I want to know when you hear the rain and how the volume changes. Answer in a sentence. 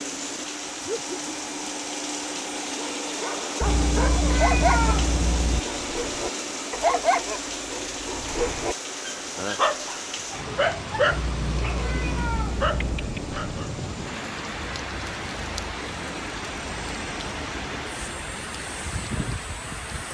The rain can be heard from 0.0 to 20.0 s, at a steady volume.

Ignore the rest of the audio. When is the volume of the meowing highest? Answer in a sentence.
The loudest moment of the meowing is at 5 seconds.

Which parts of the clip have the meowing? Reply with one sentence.
You can hear the meowing from 3.6 to 5.6 s and from 11.1 to 12.9 s.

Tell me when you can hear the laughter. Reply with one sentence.
The laughter can be heard from 0.8 to 1.7 s.